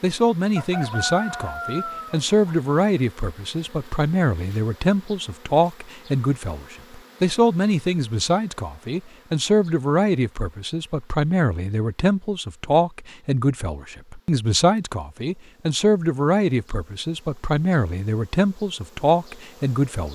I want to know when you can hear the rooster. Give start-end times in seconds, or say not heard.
0.6-2.5.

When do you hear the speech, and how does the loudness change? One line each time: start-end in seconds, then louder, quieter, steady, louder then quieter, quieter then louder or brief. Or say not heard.
0.0-20.1 steady.